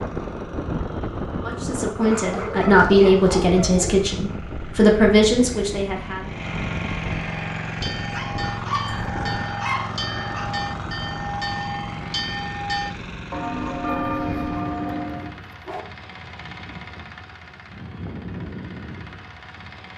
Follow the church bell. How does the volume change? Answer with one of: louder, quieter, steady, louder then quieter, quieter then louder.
louder.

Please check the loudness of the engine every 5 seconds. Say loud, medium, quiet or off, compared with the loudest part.
medium, loud, loud, medium.